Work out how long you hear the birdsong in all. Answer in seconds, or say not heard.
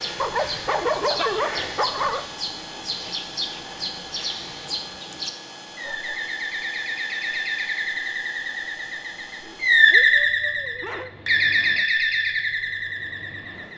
14 s.